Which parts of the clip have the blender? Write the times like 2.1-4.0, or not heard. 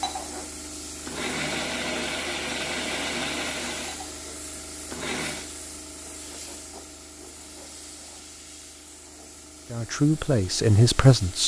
0.0-5.5.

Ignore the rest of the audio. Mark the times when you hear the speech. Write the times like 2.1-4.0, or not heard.
9.7-11.4.